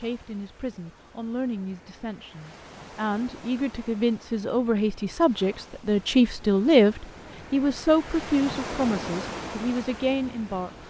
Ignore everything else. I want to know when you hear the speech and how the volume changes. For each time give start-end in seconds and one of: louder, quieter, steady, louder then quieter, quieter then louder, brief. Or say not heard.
0.0-10.8 louder then quieter.